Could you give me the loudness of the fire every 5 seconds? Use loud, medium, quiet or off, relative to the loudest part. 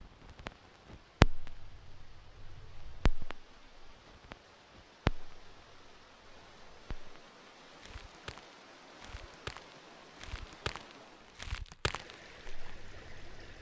loud, medium, quiet.